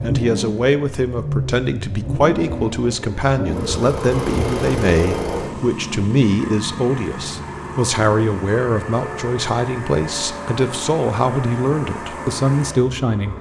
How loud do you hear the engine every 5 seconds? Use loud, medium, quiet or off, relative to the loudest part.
loud, loud, medium.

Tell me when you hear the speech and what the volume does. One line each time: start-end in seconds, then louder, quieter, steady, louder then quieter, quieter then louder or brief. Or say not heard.
0.0-13.3 steady.